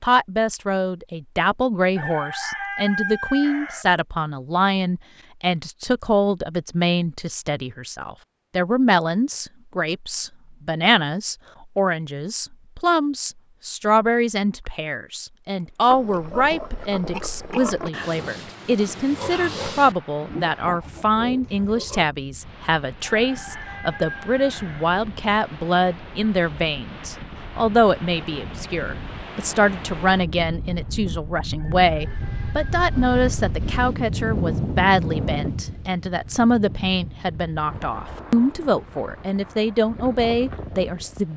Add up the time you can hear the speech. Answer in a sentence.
You can hear the speech for 41 seconds altogether.